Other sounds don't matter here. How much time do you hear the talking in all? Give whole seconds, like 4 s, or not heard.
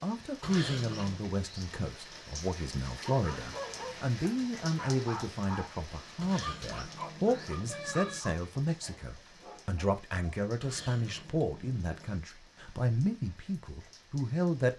15 s.